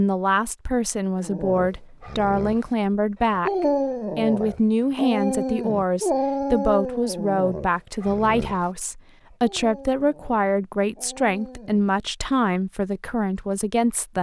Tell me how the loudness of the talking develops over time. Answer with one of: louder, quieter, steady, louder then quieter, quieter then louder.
steady.